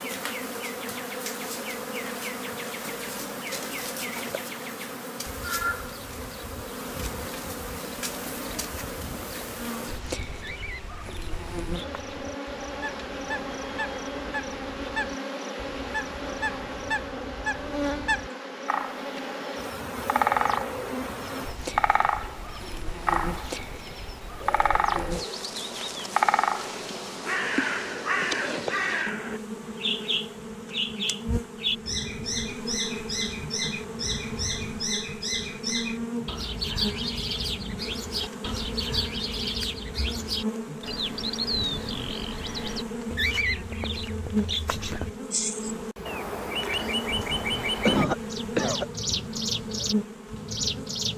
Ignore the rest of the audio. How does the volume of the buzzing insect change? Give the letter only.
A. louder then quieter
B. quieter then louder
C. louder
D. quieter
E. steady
E.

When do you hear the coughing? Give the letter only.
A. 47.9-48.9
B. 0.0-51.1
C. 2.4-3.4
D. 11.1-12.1
A.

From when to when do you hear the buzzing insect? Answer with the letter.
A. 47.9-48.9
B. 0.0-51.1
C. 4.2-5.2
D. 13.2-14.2
B.